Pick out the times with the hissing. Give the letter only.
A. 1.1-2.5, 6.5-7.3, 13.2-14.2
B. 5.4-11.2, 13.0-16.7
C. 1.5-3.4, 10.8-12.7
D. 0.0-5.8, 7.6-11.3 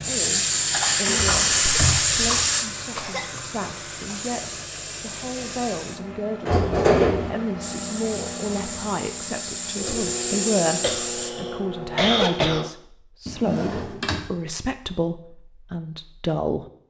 D.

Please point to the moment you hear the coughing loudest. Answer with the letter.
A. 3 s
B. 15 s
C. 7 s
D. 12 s
D.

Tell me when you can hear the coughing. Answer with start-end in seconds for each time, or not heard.
1.5-3.4, 10.8-12.7.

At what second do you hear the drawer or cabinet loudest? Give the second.
7 s.